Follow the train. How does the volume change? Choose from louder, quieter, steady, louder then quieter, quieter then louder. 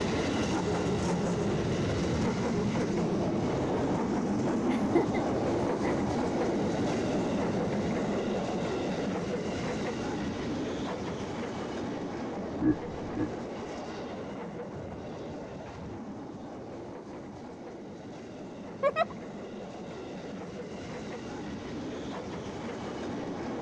quieter.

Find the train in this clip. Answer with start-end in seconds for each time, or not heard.
0.0-23.5.